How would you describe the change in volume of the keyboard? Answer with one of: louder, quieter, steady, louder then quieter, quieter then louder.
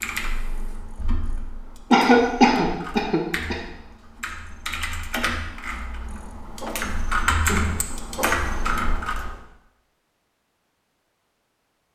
louder.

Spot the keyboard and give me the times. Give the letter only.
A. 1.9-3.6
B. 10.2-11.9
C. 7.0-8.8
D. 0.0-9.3
D.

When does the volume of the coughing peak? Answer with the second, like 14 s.
2 s.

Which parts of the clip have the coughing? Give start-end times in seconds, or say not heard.
1.9-3.6.